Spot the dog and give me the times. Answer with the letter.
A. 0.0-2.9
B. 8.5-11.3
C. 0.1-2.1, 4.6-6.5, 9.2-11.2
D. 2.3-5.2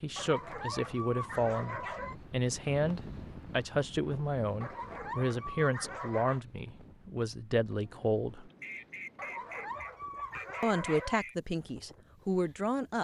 C.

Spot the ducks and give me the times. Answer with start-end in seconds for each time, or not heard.
8.5-11.3.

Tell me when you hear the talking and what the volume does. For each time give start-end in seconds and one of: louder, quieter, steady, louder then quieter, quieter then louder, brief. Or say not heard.
0.0-8.5 steady
10.6-13.0 brief.